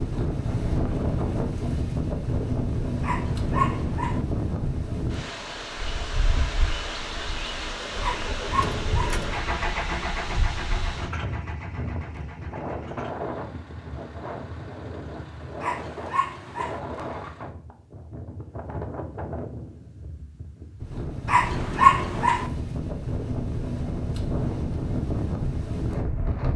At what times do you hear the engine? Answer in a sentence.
The engine can be heard from 7.6 to 17.6 s.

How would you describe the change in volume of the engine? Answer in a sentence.
The loudness of the engine goes down.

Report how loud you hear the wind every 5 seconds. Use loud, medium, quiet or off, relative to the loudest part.
loud, medium, medium, medium, loud, loud.